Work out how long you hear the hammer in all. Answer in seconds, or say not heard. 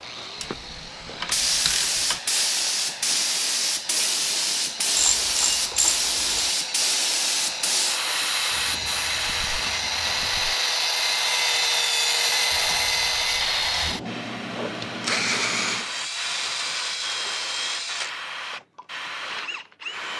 not heard.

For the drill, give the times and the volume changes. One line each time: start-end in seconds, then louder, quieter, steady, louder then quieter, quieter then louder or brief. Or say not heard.
0.0-20.1 louder then quieter.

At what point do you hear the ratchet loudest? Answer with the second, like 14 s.
5 s.